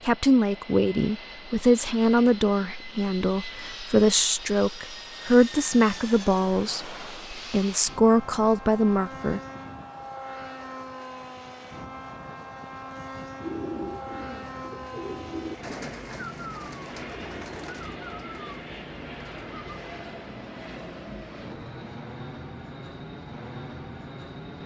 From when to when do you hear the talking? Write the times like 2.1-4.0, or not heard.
0.1-9.4.